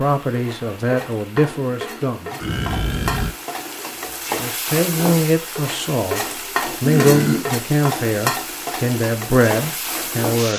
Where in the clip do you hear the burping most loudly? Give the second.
7 s.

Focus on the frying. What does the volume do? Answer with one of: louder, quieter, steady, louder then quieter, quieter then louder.
louder.